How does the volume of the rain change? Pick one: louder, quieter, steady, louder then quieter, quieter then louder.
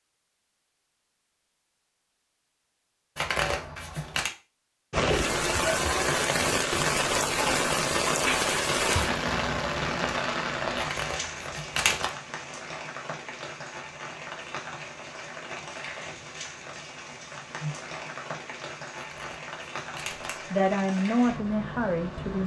quieter.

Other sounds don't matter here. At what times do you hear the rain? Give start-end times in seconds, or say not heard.
4.9-22.4.